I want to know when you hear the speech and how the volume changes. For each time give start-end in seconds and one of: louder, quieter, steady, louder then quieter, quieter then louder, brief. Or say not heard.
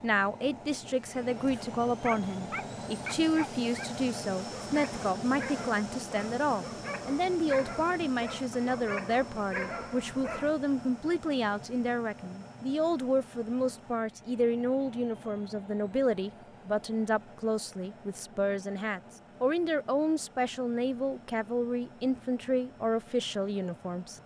0.0-24.2 steady.